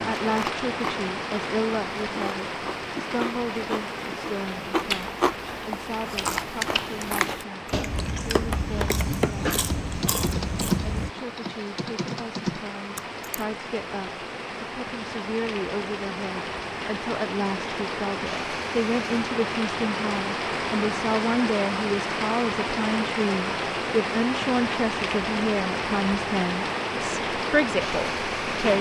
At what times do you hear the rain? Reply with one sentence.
You can hear the rain from 0.0 to 28.7 s.